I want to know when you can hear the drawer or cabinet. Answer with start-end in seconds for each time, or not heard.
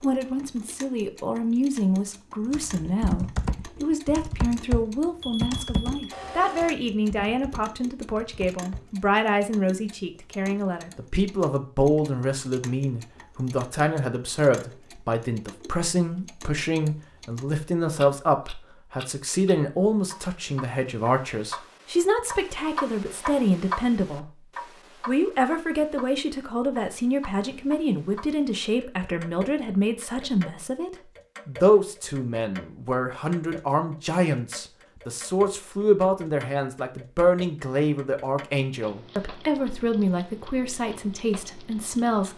not heard.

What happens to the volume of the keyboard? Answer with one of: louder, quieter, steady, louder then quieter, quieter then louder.
quieter.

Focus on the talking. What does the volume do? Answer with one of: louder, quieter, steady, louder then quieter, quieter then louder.
steady.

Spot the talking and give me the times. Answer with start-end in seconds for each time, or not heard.
0.0-24.3, 25.1-42.3.